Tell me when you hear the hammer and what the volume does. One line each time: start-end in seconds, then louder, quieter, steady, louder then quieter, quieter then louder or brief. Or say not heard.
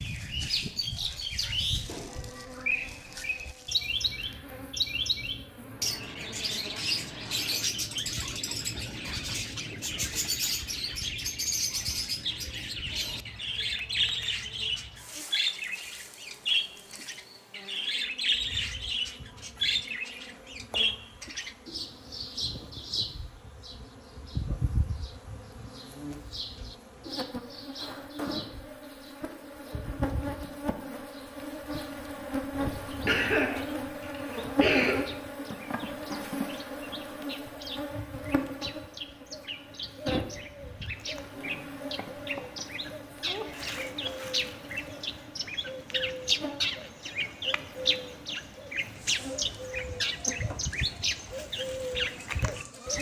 not heard.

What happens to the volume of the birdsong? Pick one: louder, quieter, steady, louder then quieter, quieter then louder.
quieter then louder.